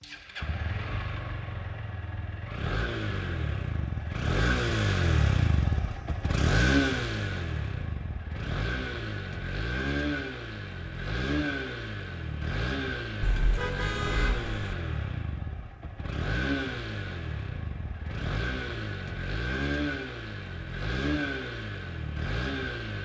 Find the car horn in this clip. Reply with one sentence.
You can hear the car horn from 13.2 to 14.8 s.